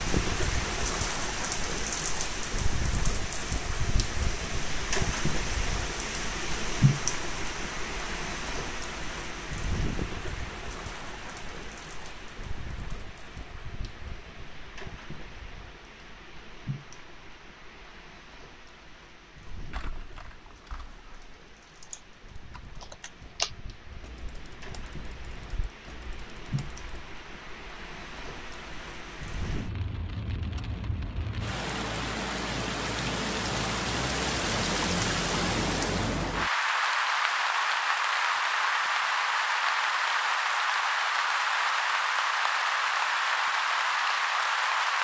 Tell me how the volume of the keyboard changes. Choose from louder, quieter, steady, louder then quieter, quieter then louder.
louder then quieter.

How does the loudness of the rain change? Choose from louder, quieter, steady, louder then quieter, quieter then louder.
quieter then louder.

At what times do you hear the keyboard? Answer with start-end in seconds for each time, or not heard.
19.5-27.1.